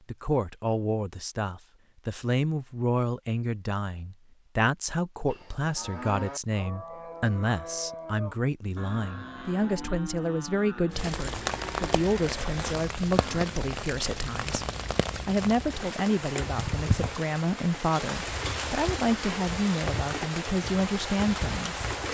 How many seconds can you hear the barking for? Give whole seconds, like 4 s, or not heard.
not heard.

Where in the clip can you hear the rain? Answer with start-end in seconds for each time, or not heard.
10.9-22.1.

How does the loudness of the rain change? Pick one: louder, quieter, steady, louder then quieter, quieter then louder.
steady.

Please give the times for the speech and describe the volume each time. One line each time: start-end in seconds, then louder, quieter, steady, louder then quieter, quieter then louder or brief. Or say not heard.
0.1-21.9 steady.